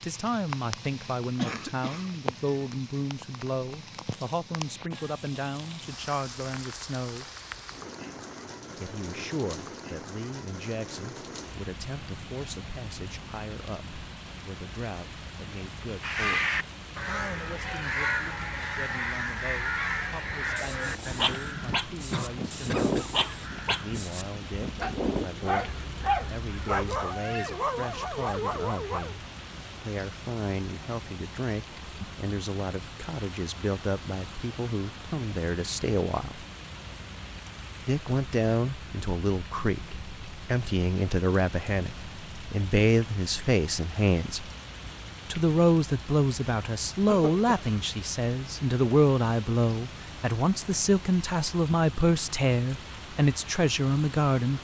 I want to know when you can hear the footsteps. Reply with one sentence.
The footsteps can't be heard in this clip.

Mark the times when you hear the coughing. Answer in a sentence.
You can hear the coughing from 1.4 to 2.2 s, from 22.1 to 23.9 s and from 47.0 to 47.5 s.